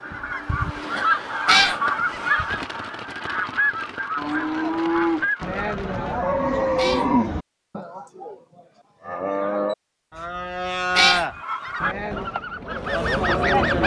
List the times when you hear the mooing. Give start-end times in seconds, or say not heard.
4.2-12.3.